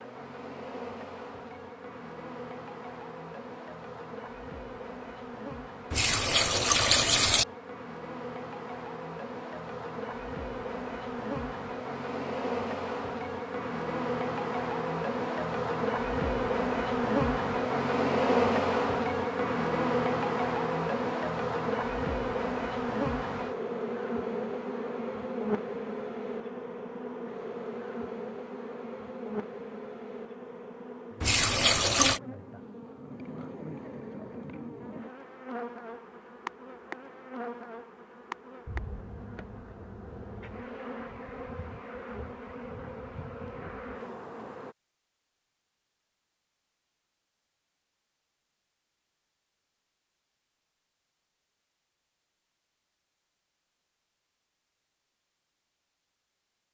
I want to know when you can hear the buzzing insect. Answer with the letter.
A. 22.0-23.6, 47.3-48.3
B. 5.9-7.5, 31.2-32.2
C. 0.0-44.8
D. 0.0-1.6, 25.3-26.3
C.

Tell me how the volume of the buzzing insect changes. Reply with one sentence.
The volume of the buzzing insect goes up, then down.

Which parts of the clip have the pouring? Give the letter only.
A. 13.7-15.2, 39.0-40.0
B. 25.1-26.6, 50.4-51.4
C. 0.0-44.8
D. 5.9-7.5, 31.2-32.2
D.